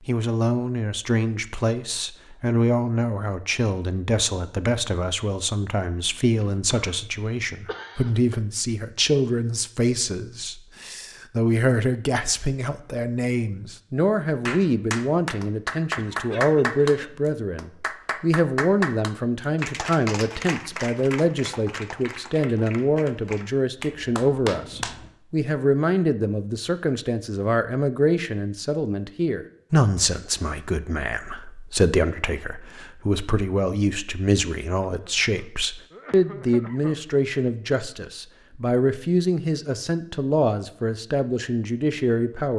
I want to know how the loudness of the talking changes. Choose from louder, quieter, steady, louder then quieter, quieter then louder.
steady.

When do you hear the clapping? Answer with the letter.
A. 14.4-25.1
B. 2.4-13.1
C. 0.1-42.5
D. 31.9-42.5
A.